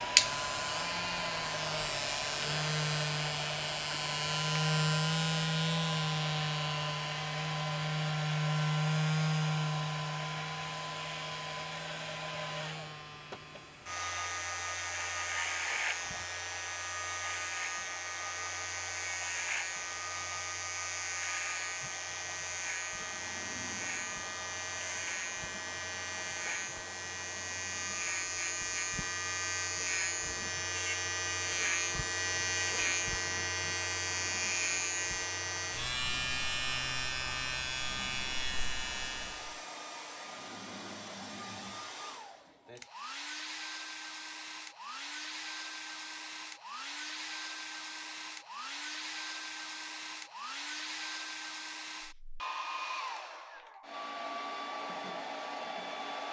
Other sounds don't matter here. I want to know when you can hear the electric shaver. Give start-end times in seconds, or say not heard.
0.0-39.6.